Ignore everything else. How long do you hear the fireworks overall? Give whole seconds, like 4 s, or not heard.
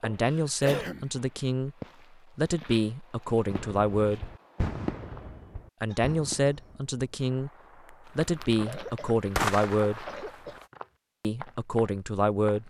7 s.